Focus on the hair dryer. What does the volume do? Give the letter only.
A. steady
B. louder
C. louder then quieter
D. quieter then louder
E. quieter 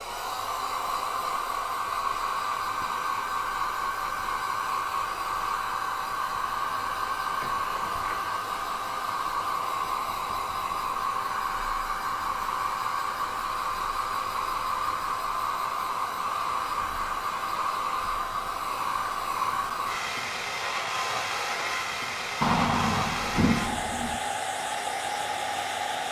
A.